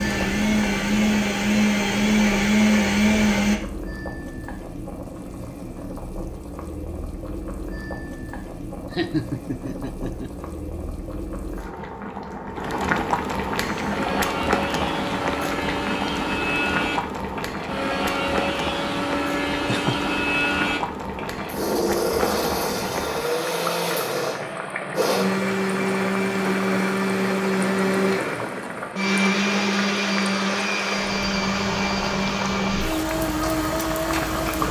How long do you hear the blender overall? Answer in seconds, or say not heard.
25 s.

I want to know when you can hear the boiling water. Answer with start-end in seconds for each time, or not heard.
0.0-34.6.